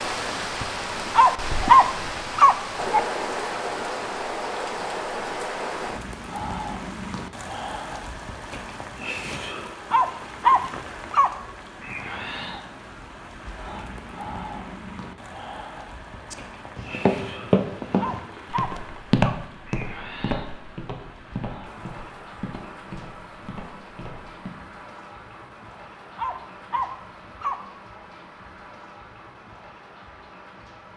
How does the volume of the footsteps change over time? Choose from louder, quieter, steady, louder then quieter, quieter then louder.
quieter.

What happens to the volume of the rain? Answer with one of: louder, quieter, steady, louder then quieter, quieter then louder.
quieter.